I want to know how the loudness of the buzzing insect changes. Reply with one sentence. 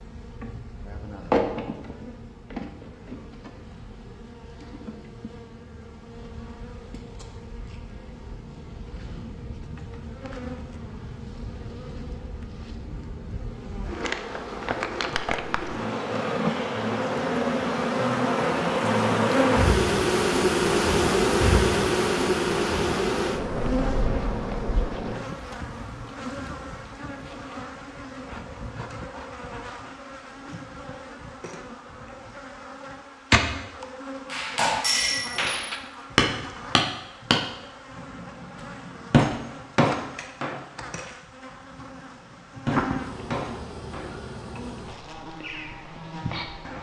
The volume of the buzzing insect goes up, then down.